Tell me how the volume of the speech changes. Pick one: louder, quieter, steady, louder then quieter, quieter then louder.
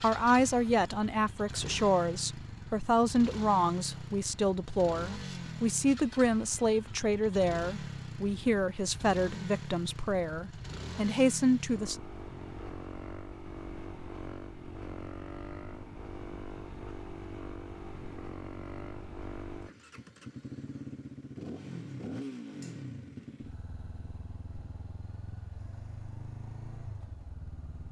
steady.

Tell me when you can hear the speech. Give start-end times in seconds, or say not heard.
0.0-11.9.